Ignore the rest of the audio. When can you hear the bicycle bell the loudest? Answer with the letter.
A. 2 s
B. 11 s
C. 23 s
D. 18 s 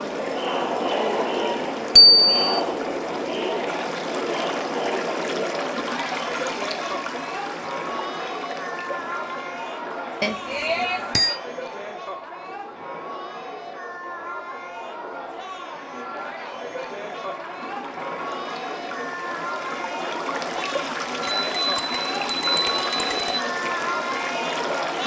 A.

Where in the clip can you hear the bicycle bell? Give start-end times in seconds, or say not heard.
1.9-2.6, 10.2-11.3, 21.2-23.4.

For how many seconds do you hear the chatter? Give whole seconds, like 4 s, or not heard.
25 s.